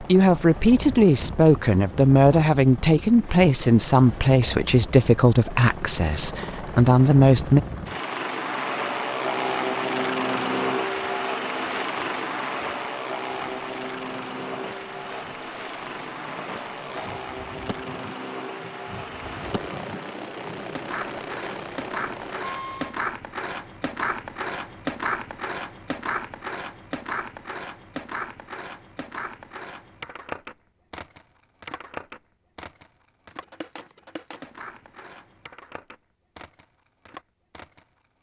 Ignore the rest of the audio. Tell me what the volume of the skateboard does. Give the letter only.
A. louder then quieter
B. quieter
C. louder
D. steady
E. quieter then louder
A.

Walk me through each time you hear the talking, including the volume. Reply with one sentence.
The talking can be heard from 0.0 to 7.6 s, at a steady volume.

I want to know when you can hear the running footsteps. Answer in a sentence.
You can't hear the running footsteps here.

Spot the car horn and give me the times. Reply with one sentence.
You can't hear the car horn here.